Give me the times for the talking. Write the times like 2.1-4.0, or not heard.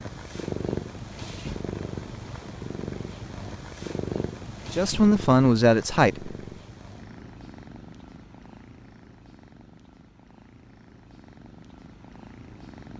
4.7-6.3.